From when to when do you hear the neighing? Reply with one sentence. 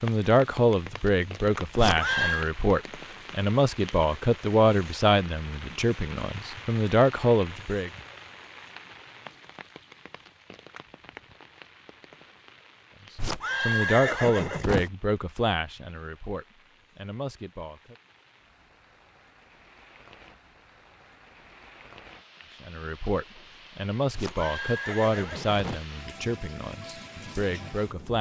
You can hear the neighing from 1.8 to 2.5 s, from 13.2 to 14.9 s and from 24.1 to 25.9 s.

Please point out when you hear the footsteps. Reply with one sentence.
You can't hear the footsteps here.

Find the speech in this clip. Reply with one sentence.
The speech can be heard from 0.0 to 7.9 s, from 13.7 to 17.9 s and from 22.6 to 28.1 s.